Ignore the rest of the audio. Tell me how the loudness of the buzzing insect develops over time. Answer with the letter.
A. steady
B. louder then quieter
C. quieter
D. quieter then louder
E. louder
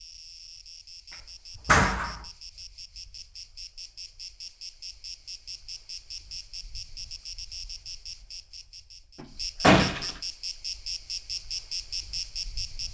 E.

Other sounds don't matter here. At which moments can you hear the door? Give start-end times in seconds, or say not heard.
1.6-2.1, 9.2-10.1.